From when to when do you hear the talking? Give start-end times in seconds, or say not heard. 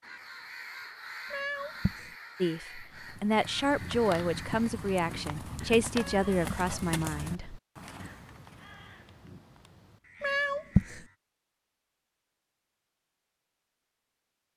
2.4-7.6.